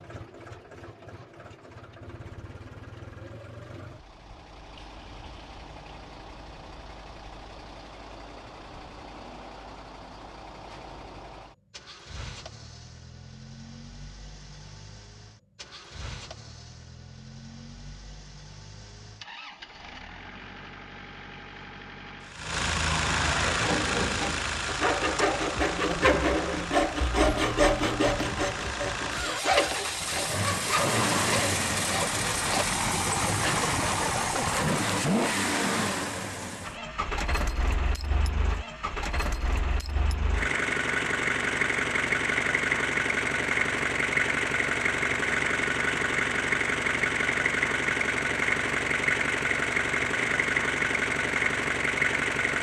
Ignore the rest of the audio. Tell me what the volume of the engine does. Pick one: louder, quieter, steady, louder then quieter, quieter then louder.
louder.